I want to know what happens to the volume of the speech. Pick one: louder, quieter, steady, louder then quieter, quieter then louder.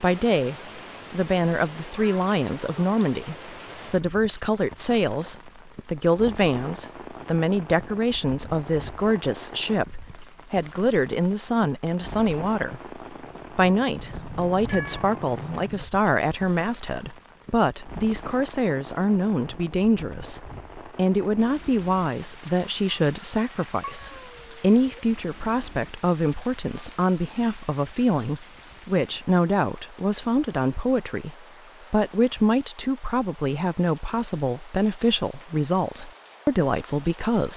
steady.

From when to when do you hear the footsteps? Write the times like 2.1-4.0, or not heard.
not heard.